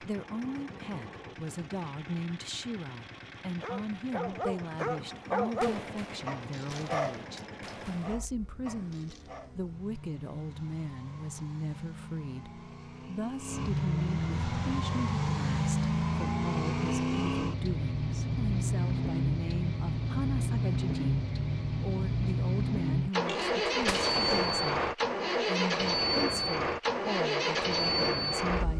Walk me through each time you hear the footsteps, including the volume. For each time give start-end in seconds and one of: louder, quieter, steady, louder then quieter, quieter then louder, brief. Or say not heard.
not heard.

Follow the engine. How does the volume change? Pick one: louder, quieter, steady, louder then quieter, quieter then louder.
louder.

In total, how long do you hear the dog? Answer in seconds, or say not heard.
6 s.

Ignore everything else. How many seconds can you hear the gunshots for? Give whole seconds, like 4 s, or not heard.
4 s.